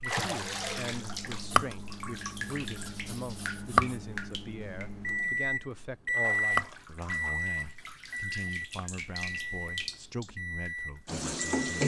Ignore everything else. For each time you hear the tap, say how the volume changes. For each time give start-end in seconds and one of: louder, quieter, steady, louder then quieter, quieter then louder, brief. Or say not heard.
0.1-11.8 quieter then louder.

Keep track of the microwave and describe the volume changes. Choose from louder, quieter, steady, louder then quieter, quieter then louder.
louder then quieter.